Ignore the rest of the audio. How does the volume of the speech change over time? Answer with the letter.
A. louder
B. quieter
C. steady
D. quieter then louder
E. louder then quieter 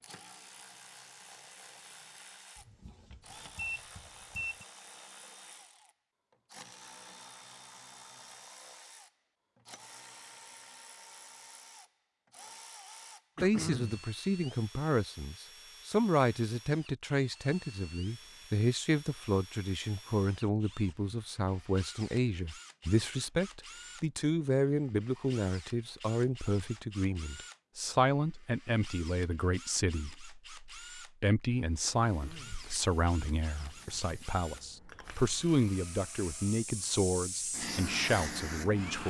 C.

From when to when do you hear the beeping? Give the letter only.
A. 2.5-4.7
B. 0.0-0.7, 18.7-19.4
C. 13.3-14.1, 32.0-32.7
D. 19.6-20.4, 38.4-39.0
A.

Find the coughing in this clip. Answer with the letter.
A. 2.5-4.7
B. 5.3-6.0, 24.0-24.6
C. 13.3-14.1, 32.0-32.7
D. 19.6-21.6
C.